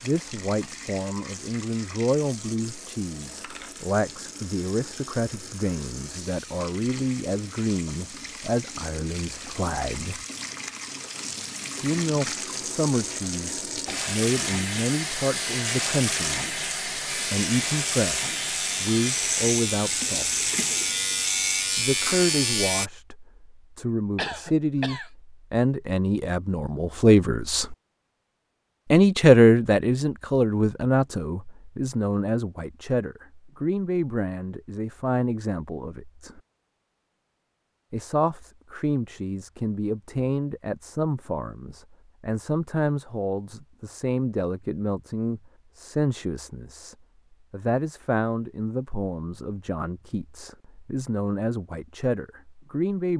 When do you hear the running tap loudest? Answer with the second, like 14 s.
16 s.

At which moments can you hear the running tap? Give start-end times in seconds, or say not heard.
0.0-21.4.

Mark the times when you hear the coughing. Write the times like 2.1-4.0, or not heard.
24.1-25.1.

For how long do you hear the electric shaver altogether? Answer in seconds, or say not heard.
6 s.